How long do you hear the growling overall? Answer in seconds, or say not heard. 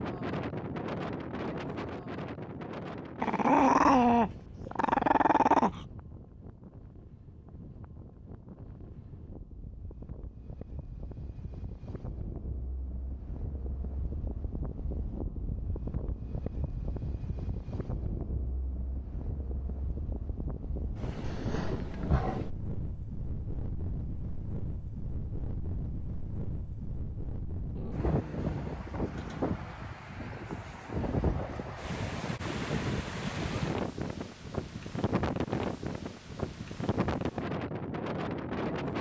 6 s.